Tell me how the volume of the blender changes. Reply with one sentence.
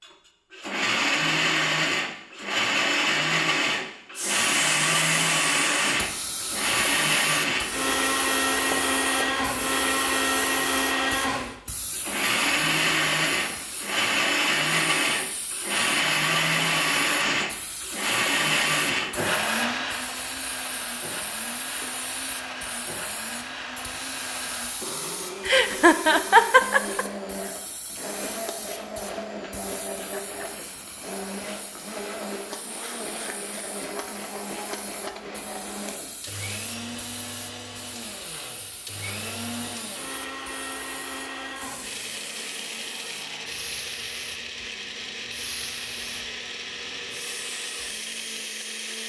The volume of the blender goes down.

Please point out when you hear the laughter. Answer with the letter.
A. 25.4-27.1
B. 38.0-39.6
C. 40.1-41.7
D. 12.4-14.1
A.